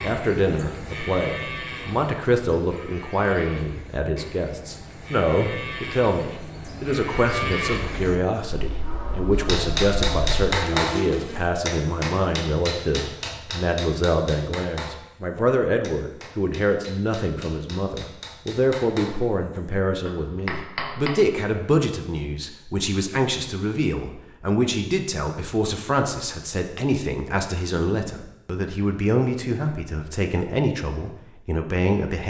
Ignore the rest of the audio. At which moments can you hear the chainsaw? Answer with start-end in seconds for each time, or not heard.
not heard.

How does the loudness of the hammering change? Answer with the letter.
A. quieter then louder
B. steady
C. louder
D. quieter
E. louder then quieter
A.